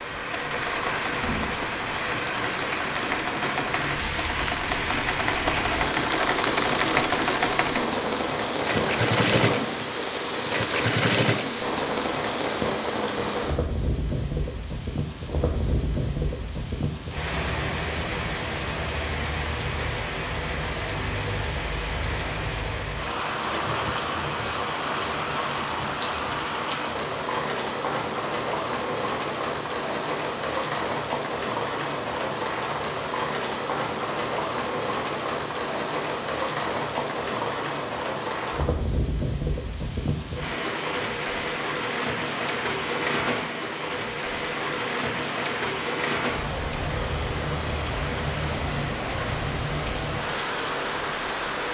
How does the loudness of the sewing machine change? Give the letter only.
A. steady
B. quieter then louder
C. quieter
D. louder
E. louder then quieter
D.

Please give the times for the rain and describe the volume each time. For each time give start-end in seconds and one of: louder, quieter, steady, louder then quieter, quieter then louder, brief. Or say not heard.
0.0-51.6 steady.